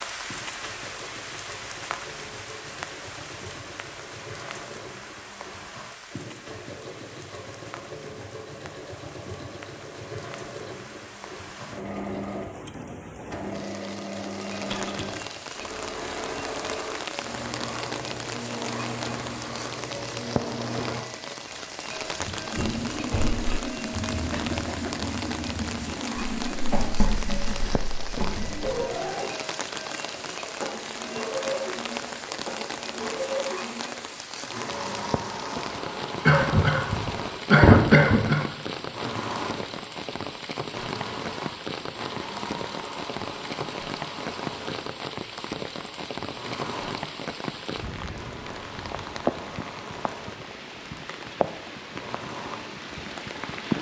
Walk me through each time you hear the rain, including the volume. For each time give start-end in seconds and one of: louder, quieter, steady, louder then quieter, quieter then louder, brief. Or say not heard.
0.0-53.7 louder.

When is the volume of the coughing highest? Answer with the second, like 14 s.
38 s.